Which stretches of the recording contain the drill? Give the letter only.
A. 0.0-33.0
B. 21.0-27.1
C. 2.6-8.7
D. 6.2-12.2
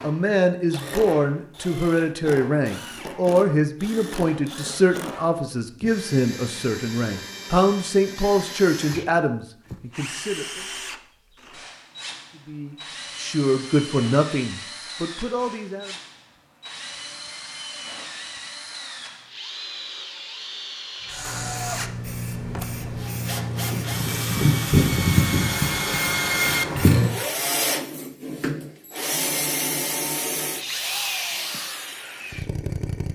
A.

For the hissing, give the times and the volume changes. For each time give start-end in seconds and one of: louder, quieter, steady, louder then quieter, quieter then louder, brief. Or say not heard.
21.0-27.1 louder then quieter.